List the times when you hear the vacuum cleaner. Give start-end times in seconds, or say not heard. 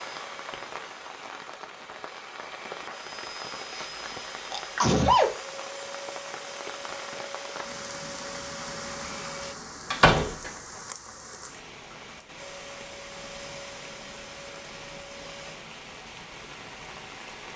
0.0-9.6, 12.3-15.6.